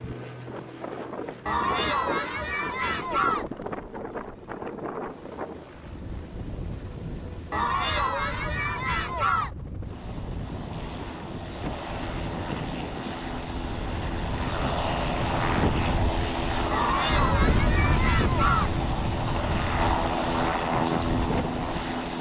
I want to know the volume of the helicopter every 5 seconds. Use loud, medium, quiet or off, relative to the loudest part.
quiet, quiet, medium, loud, loud.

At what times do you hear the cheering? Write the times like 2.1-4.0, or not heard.
1.4-3.5, 7.5-9.5, 16.7-18.7.